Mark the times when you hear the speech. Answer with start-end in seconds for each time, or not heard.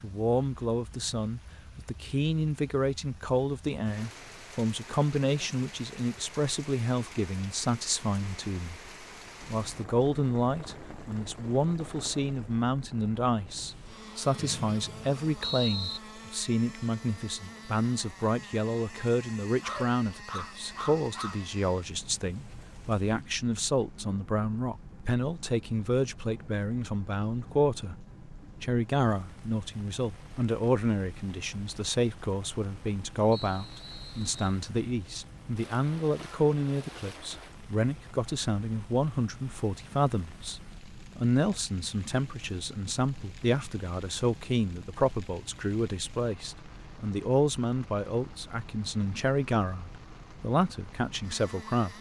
0.0-27.9, 28.6-51.9.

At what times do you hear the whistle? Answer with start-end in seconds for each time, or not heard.
14.3-16.0, 33.3-34.6.